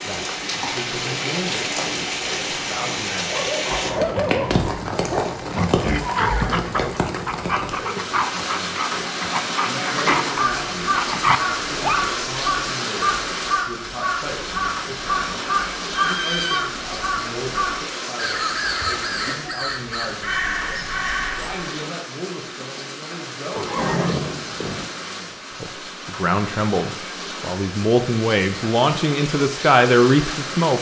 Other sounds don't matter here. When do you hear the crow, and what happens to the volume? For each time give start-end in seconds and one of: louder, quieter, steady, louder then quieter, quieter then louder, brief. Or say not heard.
9.9-21.8 steady.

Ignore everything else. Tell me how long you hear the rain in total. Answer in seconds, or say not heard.
31 s.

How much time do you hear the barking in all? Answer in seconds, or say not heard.
9 s.